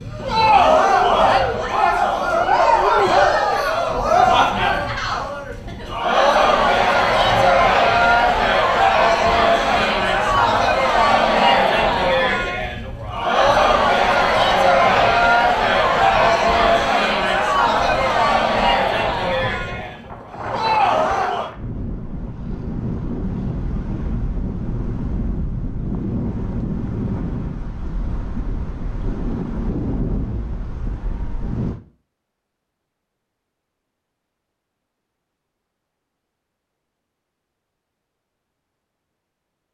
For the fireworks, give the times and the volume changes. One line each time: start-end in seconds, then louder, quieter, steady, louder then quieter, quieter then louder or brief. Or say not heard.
not heard.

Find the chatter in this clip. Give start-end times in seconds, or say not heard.
0.1-21.5.